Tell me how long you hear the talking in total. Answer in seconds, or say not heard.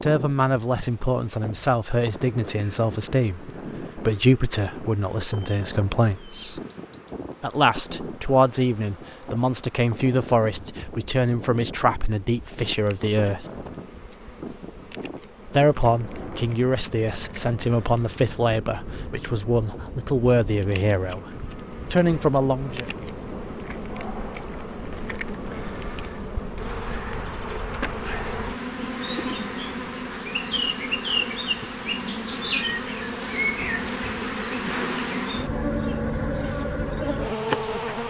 20 s.